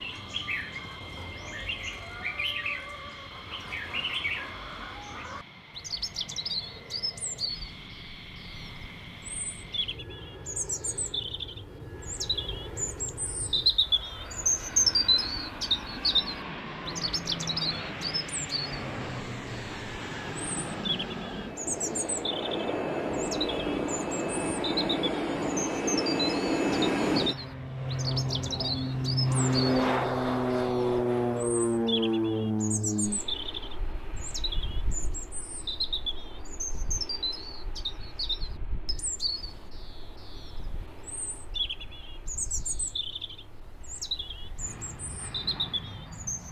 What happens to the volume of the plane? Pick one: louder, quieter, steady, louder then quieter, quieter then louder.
louder then quieter.